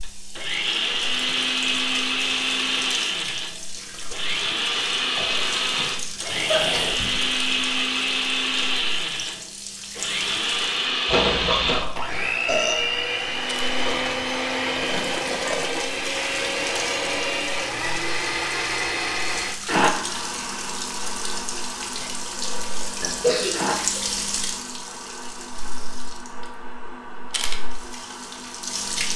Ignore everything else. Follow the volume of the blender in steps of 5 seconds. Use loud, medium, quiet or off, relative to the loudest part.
loud, loud, loud, loud, medium, quiet.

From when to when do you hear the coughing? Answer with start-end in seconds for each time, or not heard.
6.5-7.2, 11.1-11.9, 22.0-24.0.